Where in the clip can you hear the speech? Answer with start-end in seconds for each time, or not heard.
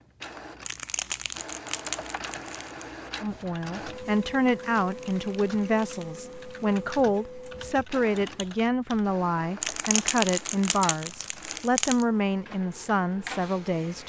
3.2-14.0.